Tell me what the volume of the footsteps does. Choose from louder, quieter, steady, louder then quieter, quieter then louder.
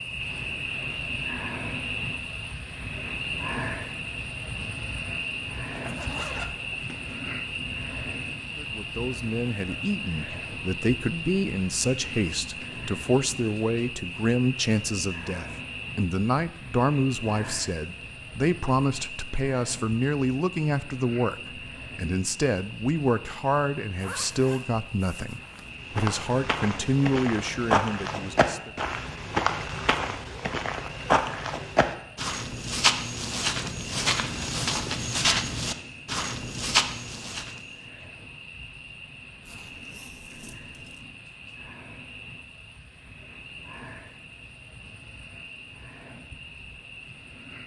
steady.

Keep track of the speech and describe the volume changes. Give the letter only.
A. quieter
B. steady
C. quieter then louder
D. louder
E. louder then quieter
B.